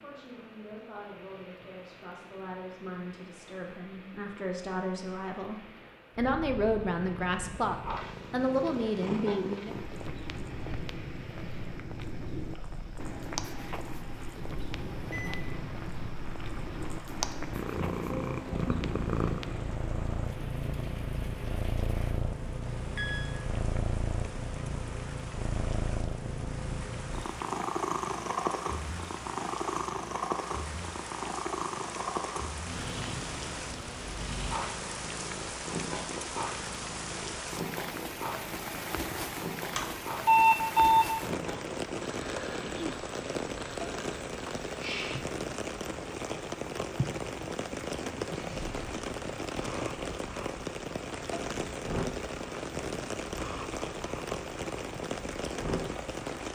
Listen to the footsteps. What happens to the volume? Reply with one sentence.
The volume of the footsteps stays about the same.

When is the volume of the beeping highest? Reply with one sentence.
The volume of the beeping peaks at 40 seconds.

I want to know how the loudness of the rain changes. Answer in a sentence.
The loudness of the rain goes up.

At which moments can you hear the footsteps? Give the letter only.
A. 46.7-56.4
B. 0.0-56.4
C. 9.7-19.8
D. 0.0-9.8
C.